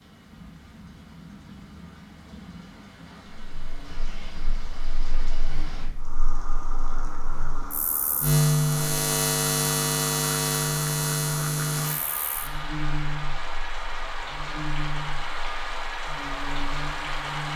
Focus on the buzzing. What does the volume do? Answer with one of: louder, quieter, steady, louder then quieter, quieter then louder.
louder then quieter.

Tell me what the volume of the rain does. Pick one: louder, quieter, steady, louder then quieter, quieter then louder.
louder.